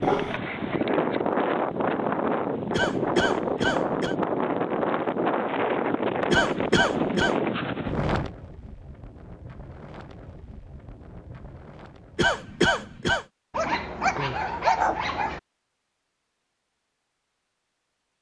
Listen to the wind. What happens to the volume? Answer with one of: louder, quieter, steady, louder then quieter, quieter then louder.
quieter.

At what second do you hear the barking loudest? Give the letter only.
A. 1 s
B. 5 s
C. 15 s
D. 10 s
C.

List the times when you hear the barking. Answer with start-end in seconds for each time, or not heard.
0.0-0.4, 13.5-15.4.